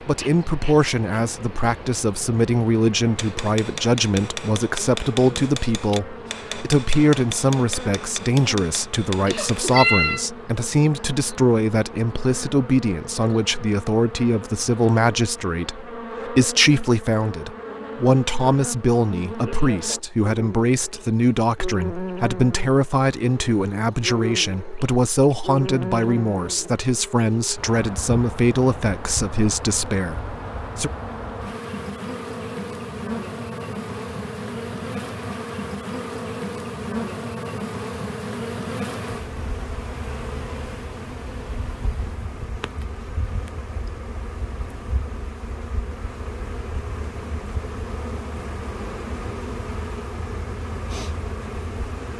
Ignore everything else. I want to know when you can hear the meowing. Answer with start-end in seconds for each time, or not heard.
9.2-10.2.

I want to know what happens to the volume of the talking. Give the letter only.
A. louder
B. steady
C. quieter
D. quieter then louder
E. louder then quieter
B.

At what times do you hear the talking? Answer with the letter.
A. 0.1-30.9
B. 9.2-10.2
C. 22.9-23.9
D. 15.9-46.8
A.